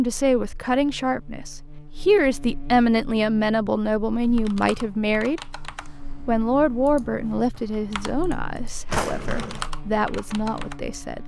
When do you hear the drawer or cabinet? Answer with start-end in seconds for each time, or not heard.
8.8-9.7.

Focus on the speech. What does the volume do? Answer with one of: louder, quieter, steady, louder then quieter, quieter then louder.
quieter.